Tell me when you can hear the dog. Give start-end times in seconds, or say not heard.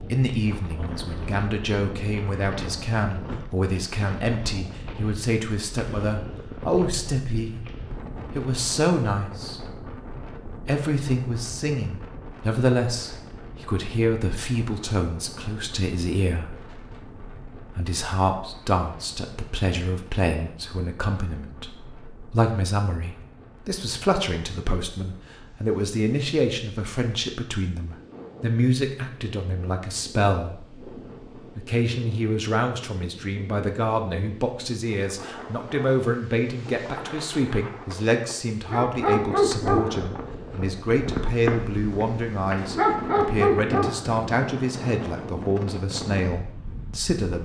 38.7-44.1.